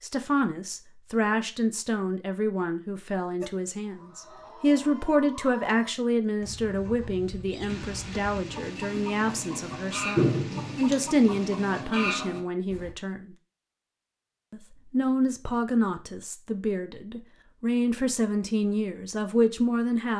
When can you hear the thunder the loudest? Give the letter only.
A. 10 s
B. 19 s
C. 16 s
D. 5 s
A.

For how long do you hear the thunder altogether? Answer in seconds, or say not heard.
4 s.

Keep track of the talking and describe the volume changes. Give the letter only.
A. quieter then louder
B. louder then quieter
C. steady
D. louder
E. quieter
C.